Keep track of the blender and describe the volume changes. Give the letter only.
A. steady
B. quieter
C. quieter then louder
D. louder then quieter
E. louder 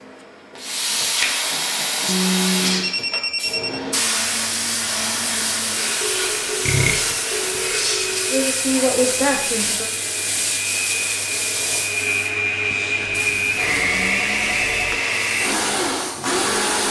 E.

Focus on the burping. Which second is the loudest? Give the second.
7 s.